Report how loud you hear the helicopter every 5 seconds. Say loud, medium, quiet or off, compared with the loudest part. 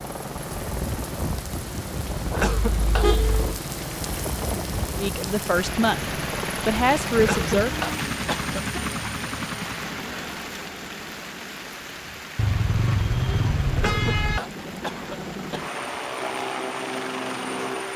loud, loud, medium, loud.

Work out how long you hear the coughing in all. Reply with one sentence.
You can hear the coughing for 4 seconds altogether.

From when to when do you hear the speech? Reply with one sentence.
The speech can be heard from 5.0 to 7.7 s.